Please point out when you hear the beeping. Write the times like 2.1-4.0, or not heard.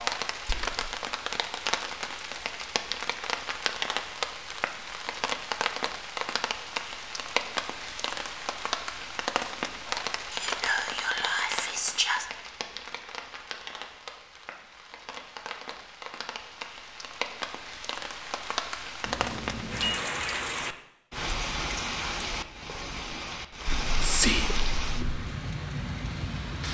19.0-20.0.